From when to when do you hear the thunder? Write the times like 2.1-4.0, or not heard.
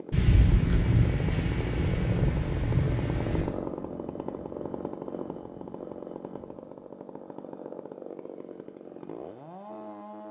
0.1-3.5.